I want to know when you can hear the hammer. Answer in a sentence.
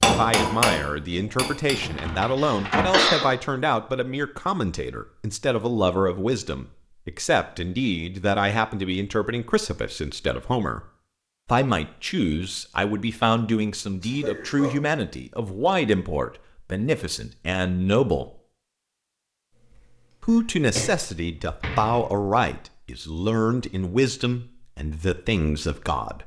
You can hear the hammer from 0.0 to 2.0 s.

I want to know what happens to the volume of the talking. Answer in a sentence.
The loudness of the talking stays about the same.